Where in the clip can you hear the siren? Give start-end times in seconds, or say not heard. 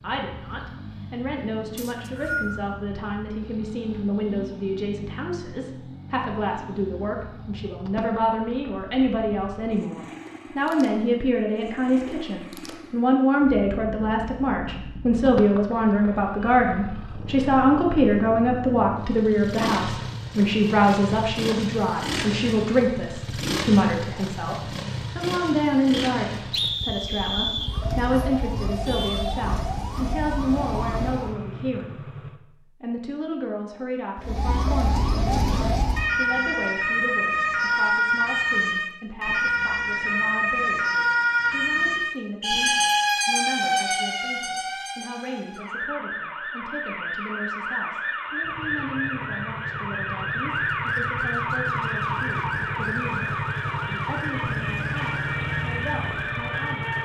27.6-31.4, 34.2-57.0.